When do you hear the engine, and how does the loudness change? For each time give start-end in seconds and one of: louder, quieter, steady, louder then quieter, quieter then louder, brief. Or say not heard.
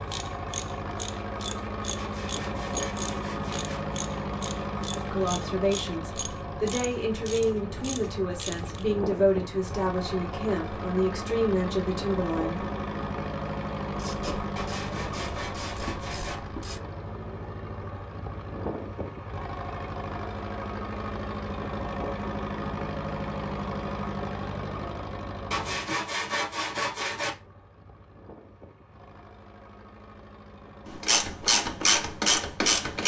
0.0-33.0 quieter.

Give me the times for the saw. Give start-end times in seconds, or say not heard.
1.9-3.8, 14.6-16.4, 25.5-27.3.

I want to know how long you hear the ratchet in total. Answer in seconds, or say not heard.
14 s.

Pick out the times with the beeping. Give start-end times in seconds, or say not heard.
not heard.